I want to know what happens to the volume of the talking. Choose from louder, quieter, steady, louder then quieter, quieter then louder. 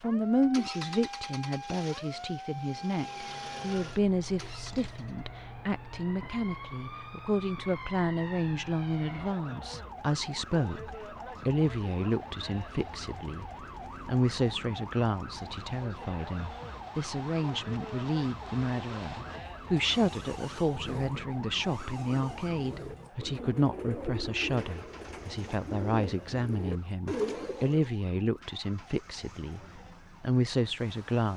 steady.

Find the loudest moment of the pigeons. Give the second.
27 s.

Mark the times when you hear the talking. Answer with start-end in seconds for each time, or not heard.
0.0-31.3.